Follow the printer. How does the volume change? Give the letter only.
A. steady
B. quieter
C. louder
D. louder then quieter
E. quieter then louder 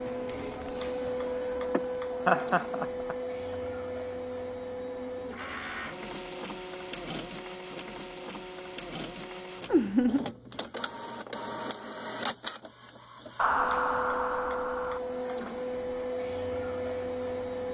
E.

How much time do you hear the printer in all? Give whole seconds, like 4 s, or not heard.
18 s.